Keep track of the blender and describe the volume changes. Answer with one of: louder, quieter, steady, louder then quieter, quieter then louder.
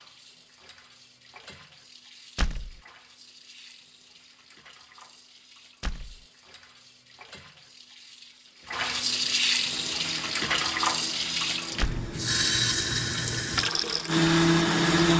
louder.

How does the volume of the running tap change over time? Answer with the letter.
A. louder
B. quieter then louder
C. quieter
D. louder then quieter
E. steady
A.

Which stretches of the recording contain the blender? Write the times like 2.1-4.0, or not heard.
9.7-15.1.